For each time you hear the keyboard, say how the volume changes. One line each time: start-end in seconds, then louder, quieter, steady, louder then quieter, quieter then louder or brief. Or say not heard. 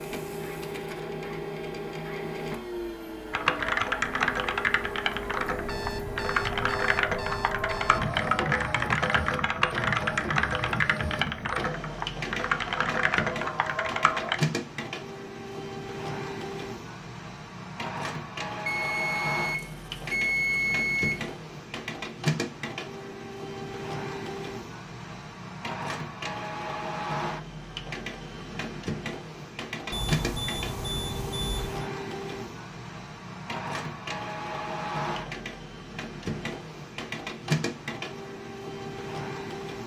3.3-14.4 steady.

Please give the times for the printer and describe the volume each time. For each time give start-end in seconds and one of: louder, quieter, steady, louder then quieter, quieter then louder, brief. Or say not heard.
0.0-39.8 steady.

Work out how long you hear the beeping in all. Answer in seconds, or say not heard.
7 s.